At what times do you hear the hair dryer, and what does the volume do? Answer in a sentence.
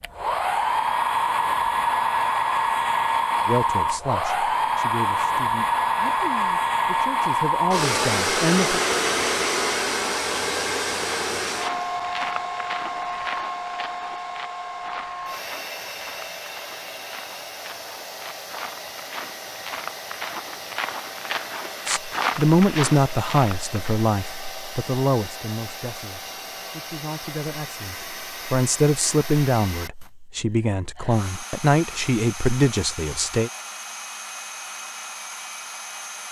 The hair dryer can be heard from 0.0 to 36.2 s, getting quieter.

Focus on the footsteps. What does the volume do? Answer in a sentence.
The loudness of the footsteps goes down, then up.